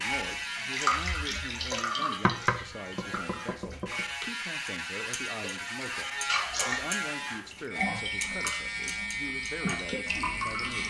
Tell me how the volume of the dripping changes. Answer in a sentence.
The volume of the dripping goes down, then up.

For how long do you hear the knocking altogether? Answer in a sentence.
The knocking can be heard for 2 seconds in total.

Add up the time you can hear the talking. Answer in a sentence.
The talking can be heard for 11 seconds in total.